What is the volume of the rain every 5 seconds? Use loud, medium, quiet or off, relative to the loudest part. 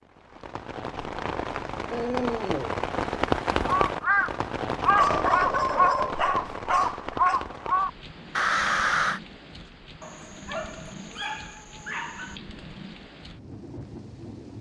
loud, medium, quiet.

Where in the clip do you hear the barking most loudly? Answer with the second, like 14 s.
5 s.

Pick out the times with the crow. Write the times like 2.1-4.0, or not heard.
3.5-9.2.